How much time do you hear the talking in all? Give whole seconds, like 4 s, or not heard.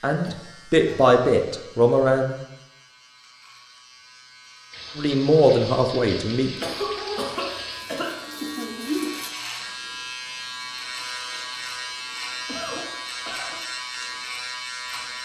4 s.